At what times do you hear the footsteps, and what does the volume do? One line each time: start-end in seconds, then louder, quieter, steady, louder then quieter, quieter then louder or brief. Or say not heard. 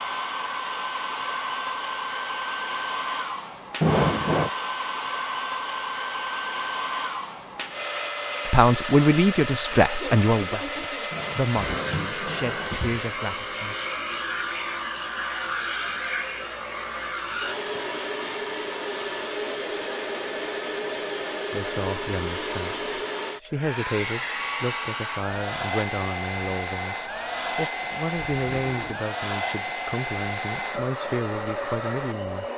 not heard.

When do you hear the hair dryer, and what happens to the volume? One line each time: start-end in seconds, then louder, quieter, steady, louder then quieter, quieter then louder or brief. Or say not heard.
0.0-32.5 steady.